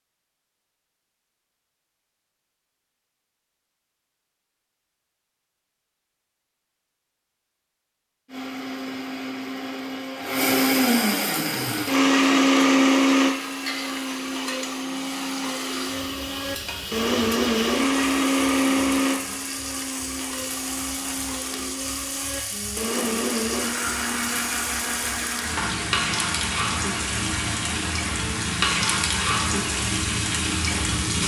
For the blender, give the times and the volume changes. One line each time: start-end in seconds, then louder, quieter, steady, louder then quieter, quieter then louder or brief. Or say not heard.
8.2-31.2 quieter.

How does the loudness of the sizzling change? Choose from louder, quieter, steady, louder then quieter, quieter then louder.
louder.